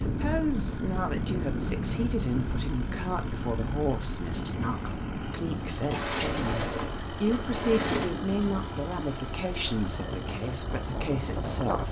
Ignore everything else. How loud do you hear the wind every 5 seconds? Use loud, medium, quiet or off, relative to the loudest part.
loud, medium, loud.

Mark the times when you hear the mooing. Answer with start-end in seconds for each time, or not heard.
not heard.